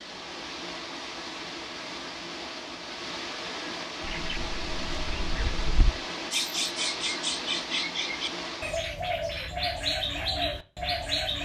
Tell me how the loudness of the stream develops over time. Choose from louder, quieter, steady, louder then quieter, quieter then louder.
steady.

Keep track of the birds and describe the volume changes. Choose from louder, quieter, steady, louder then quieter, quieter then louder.
louder.